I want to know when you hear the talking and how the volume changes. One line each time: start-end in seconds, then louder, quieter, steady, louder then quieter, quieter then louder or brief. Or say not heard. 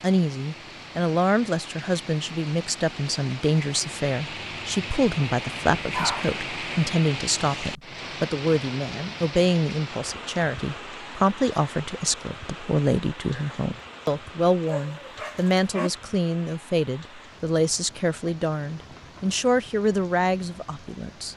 0.0-21.3 steady.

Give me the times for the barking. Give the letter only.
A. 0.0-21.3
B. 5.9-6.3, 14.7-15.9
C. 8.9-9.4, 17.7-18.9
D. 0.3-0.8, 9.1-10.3
B.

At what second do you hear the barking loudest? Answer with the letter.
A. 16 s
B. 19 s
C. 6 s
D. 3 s
C.